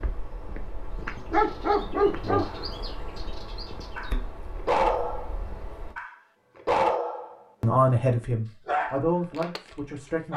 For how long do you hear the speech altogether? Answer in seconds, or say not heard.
3 s.